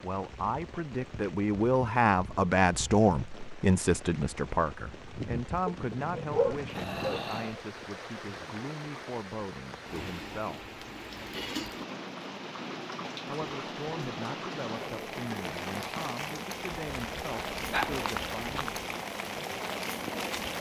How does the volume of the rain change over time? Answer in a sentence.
The volume of the rain goes up.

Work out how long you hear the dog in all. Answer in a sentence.
You can hear the dog for 4 seconds altogether.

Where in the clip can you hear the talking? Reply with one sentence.
You can hear the talking from 0.0 to 10.7 s and from 13.2 to 18.8 s.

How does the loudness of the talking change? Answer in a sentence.
The volume of the talking goes down.